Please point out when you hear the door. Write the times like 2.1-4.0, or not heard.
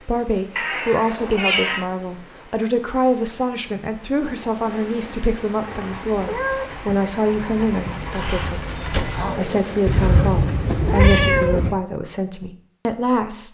7.3-9.3.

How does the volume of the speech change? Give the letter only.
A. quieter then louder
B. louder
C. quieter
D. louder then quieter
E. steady
E.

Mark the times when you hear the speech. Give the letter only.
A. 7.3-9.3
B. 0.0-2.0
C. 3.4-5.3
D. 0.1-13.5
D.